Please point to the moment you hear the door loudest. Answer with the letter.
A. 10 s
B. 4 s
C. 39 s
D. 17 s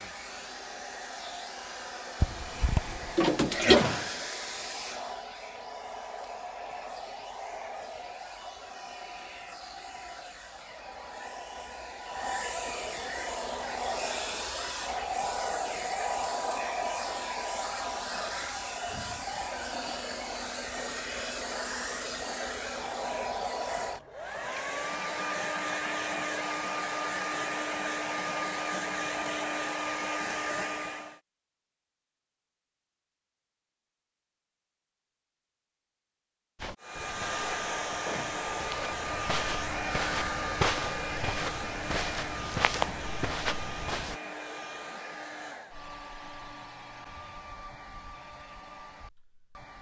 B.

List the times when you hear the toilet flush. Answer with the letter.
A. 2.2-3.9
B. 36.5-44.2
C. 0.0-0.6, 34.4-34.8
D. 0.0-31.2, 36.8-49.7
A.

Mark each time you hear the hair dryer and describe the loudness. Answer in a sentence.
You can hear the hair dryer from 0.0 to 31.2 s, getting louder; and from 36.8 to 49.7 s, getting quieter.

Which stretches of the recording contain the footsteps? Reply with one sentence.
The footsteps can be heard from 36.5 to 44.2 s.